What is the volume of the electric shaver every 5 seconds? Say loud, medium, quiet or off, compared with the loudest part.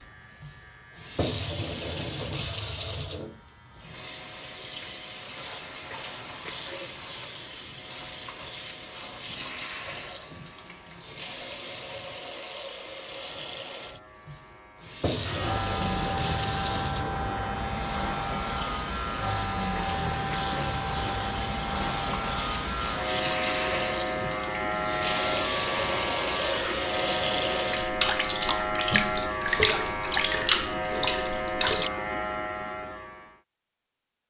quiet, quiet, quiet, loud, loud, loud, loud.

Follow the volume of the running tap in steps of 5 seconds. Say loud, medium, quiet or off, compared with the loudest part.
medium, quiet, quiet, medium, medium, loud, loud.